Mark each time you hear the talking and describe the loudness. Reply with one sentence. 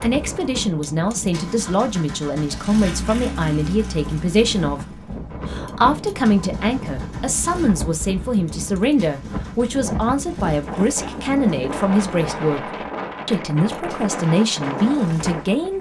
You can hear the talking from 0.0 to 15.7 s, at a steady volume.